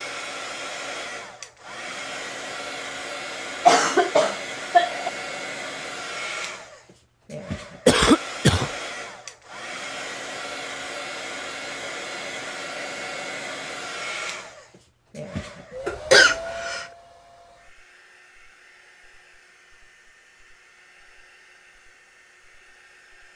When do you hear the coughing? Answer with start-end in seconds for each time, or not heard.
3.6-5.1, 7.8-8.7, 15.8-16.9.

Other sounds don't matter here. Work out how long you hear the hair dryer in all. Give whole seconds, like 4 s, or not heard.
23 s.